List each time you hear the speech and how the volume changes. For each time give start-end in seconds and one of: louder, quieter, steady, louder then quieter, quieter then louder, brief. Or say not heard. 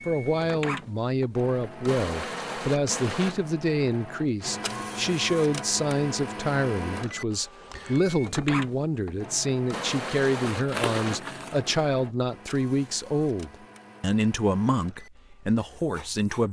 0.1-16.4 steady.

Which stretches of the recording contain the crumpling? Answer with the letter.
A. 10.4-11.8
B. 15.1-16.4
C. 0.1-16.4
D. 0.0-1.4
A.